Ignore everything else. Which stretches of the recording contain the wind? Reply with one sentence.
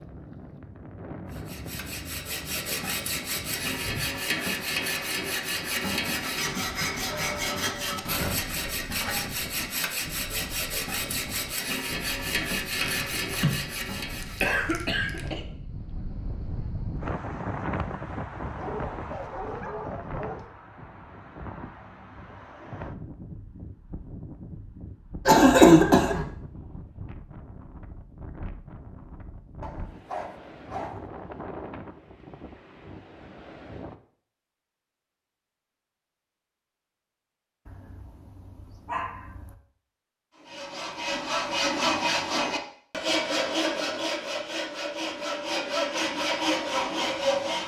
You can hear the wind from 0.0 to 34.0 s.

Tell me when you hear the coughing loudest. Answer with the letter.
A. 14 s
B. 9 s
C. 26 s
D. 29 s
C.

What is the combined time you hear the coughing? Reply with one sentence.
The coughing can be heard for 4 seconds in total.